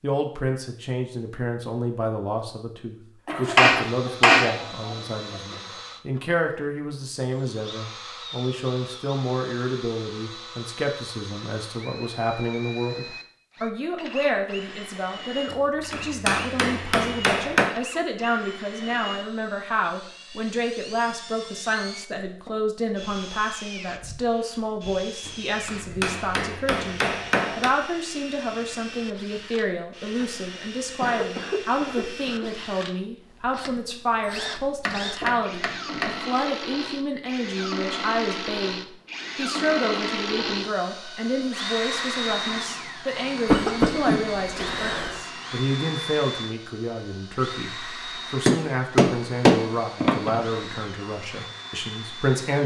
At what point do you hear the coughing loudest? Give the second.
44 s.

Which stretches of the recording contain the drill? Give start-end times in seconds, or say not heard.
3.8-52.6.